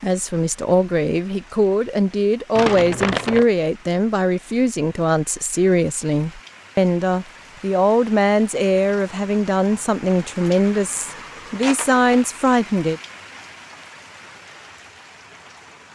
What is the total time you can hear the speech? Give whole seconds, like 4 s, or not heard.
13 s.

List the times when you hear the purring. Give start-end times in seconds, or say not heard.
not heard.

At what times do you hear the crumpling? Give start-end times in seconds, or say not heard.
2.5-3.5, 11.6-12.8.